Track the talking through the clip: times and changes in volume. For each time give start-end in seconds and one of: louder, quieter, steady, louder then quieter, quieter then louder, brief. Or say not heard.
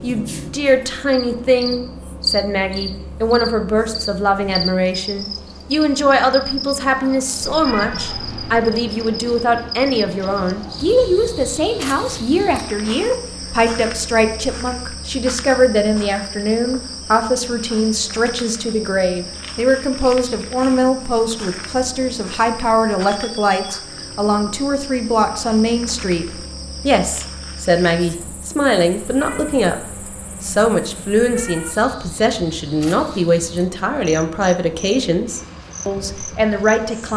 0.0-37.1 steady.